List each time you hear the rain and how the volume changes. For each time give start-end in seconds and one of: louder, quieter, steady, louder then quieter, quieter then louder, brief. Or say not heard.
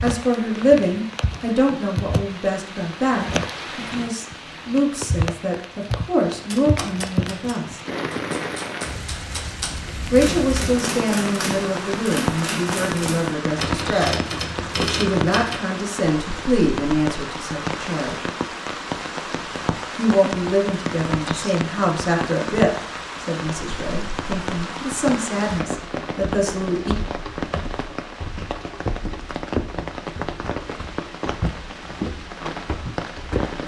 0.0-33.6 steady.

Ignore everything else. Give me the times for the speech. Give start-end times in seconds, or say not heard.
0.0-7.8, 10.1-14.2, 14.8-18.2, 19.9-26.9.